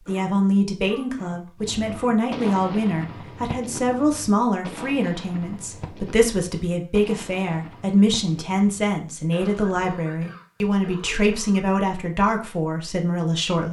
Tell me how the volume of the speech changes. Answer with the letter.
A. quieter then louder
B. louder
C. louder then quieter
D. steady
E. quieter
D.